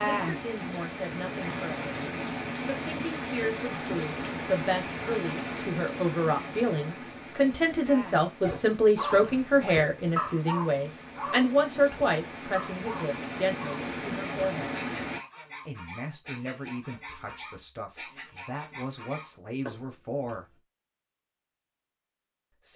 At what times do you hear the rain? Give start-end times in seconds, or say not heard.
0.0-15.2.